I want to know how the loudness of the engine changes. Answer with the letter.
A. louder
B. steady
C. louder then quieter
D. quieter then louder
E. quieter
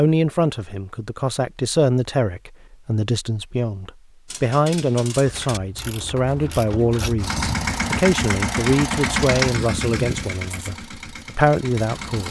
E.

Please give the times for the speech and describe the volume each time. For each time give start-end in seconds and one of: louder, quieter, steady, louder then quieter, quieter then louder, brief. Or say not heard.
0.0-12.2 steady.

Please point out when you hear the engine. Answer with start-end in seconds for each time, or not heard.
7.2-12.2.